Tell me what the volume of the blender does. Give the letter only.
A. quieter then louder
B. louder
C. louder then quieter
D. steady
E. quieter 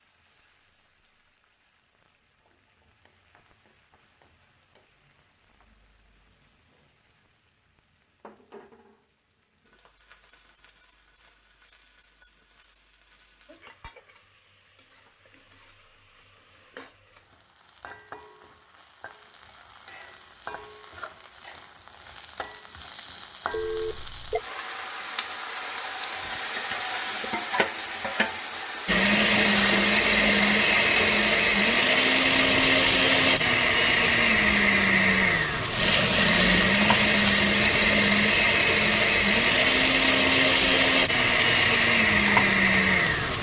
D.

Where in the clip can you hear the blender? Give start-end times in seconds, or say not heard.
28.9-43.3.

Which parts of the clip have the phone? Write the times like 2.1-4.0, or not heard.
23.5-24.4.